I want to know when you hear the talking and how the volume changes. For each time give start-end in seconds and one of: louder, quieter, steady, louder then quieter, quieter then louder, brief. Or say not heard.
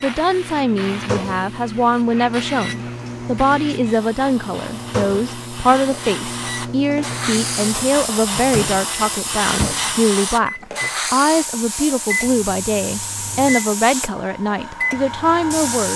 0.0-15.9 steady.